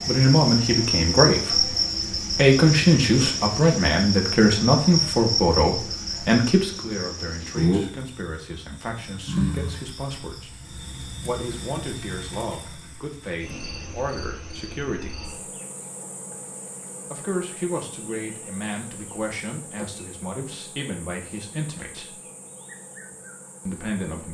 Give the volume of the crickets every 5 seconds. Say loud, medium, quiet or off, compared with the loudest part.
loud, loud, quiet, quiet, quiet.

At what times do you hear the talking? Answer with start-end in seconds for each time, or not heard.
0.1-10.6, 11.2-15.2, 17.1-22.1, 23.6-24.2.